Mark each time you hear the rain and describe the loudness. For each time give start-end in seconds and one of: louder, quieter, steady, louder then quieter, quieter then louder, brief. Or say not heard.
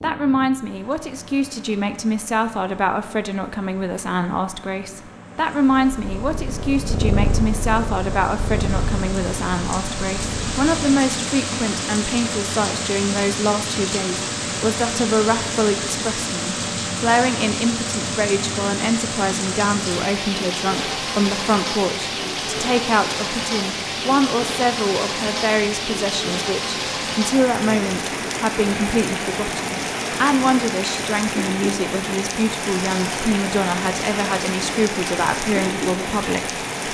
0.0-36.8 louder.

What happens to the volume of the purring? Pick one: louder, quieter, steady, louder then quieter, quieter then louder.
louder then quieter.